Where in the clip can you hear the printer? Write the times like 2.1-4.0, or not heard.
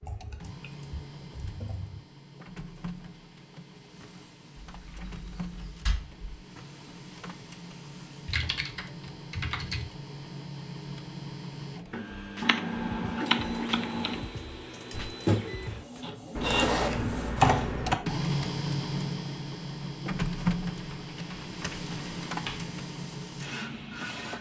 0.0-24.3.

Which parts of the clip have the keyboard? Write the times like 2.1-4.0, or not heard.
0.0-2.0, 4.7-6.3, 8.2-9.9, 12.4-14.2, 16.4-17.9, 20.8-22.7.